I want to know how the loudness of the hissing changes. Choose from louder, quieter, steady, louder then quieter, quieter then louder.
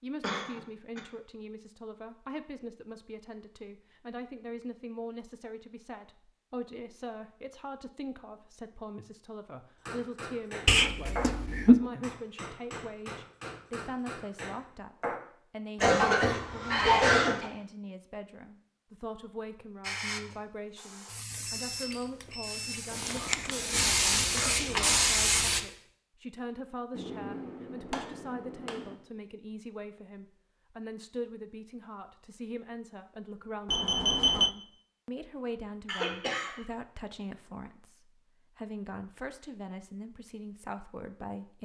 louder.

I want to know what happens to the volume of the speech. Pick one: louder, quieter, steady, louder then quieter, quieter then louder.
steady.